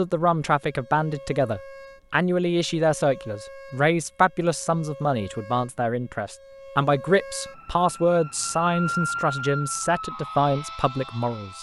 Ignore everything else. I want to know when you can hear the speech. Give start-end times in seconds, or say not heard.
0.0-11.5.